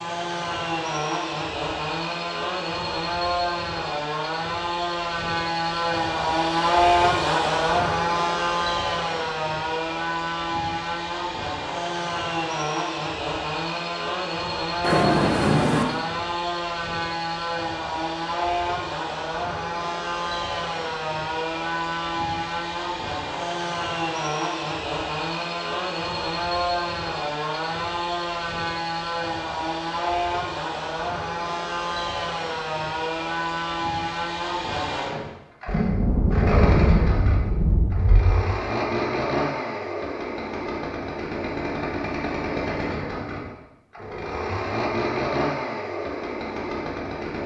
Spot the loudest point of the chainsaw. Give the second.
7 s.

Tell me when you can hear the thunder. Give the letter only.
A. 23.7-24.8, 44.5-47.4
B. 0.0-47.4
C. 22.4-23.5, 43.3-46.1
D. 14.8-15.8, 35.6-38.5
D.